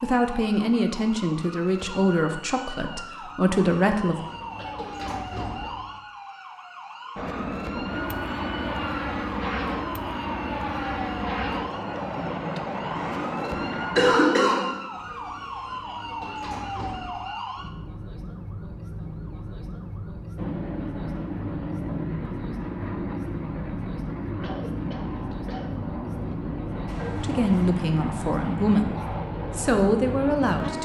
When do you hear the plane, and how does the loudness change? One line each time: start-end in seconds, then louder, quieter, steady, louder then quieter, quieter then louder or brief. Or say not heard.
7.2-14.2 steady
20.4-30.7 steady.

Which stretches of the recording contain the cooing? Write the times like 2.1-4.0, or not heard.
not heard.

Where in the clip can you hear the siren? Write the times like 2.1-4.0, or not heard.
0.0-30.7.